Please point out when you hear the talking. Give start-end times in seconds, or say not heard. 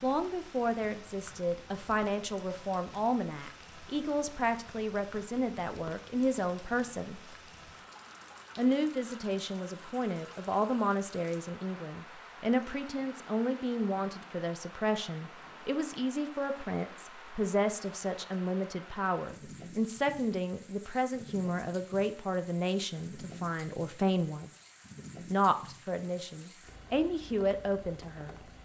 0.0-7.2, 8.6-24.5, 25.3-28.4.